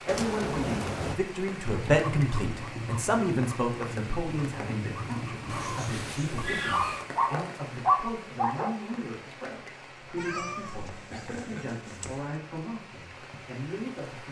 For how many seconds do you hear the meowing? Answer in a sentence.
You can hear the meowing for 5 seconds altogether.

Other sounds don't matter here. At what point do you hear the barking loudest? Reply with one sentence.
The loudest moment of the barking is at 8 seconds.